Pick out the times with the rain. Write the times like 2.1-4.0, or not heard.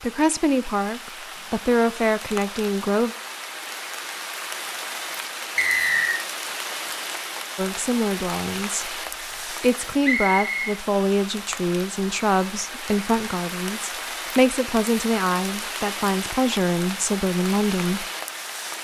0.0-18.7.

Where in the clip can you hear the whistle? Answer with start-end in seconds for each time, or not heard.
5.5-6.2, 10.0-10.8.